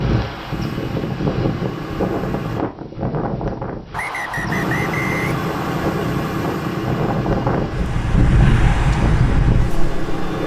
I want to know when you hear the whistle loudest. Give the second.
5 s.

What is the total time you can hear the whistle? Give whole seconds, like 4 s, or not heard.
2 s.